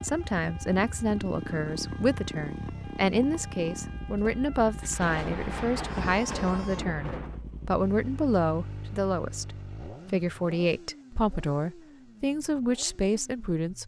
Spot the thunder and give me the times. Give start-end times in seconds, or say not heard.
4.8-7.4.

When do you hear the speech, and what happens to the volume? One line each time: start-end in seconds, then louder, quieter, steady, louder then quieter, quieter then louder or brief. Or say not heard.
0.0-13.8 steady.